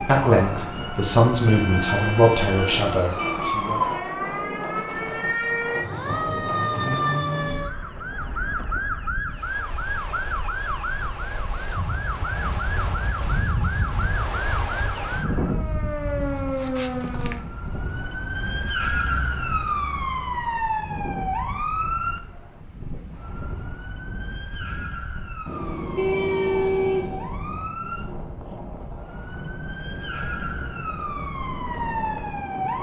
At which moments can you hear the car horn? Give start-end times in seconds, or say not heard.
1.4-3.5, 25.4-27.3.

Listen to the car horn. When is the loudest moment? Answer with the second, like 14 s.
27 s.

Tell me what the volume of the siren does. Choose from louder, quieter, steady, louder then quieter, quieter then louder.
quieter.